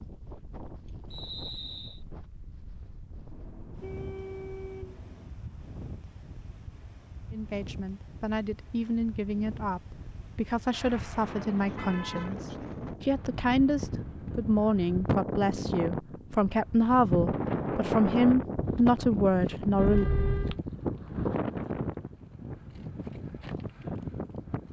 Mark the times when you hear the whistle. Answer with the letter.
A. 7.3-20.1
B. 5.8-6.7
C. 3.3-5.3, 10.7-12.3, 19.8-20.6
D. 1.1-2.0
D.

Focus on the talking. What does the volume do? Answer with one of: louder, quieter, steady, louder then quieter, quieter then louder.
louder.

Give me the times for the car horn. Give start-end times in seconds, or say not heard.
3.3-5.3, 10.7-12.3, 19.8-20.6.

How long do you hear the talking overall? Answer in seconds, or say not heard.
13 s.